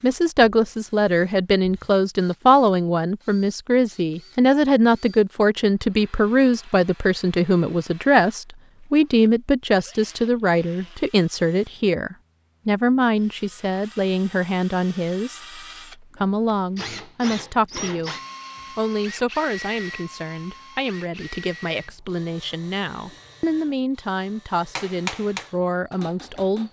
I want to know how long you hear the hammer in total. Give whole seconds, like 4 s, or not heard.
2 s.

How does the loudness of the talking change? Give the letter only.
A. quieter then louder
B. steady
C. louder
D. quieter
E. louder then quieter
D.